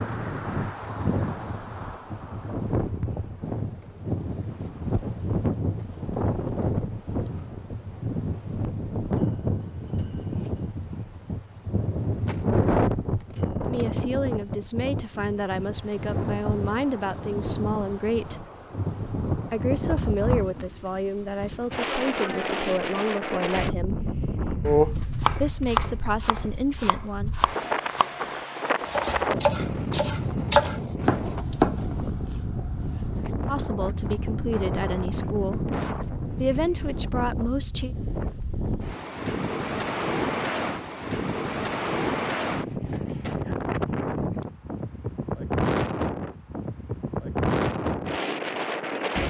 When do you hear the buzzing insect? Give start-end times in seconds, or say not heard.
not heard.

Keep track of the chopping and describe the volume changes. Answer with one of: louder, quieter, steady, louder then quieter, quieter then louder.
quieter then louder.